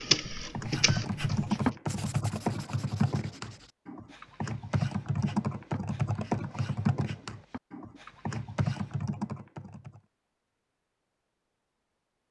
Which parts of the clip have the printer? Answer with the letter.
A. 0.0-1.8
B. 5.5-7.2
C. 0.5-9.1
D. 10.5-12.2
A.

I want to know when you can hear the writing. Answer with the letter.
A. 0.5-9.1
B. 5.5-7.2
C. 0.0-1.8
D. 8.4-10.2
A.